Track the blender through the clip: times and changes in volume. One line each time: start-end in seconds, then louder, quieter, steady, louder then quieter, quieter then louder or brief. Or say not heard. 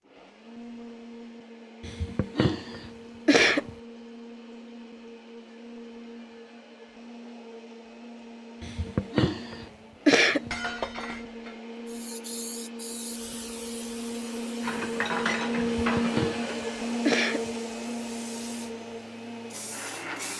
0.0-20.3 louder.